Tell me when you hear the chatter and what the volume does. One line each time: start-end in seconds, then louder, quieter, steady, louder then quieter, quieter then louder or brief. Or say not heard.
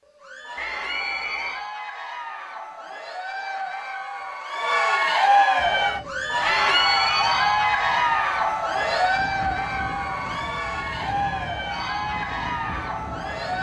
0.1-13.5 louder then quieter.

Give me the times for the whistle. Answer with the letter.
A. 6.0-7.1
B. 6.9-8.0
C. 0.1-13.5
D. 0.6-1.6
D.